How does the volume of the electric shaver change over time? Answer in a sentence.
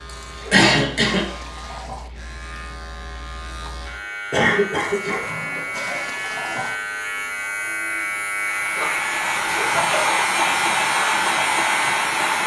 The loudness of the electric shaver goes up.